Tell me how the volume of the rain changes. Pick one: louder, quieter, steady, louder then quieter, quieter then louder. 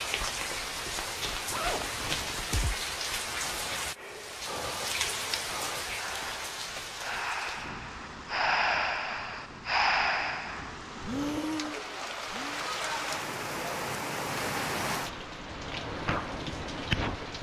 quieter then louder.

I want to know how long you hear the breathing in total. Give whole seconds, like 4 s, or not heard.
9 s.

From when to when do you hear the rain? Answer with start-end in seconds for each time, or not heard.
0.0-17.3.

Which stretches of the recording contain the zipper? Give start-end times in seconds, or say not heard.
1.5-2.9.